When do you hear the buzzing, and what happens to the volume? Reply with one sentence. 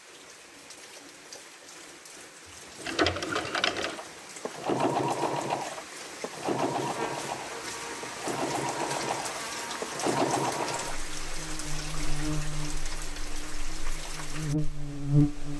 You can hear the buzzing from 6.8 to 15.5 s, getting louder.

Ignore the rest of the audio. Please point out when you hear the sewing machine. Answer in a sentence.
The sewing machine can be heard from 2.8 to 11.0 s.